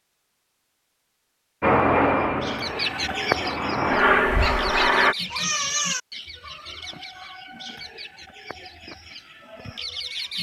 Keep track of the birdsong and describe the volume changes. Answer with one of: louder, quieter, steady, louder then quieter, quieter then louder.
quieter.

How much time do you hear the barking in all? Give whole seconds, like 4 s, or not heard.
2 s.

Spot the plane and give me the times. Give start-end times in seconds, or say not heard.
1.6-5.2.